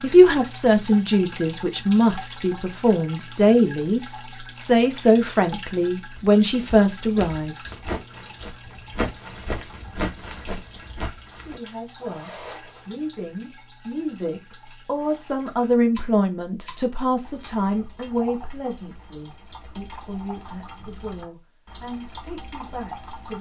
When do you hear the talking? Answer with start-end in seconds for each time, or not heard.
0.0-7.8, 11.3-23.3.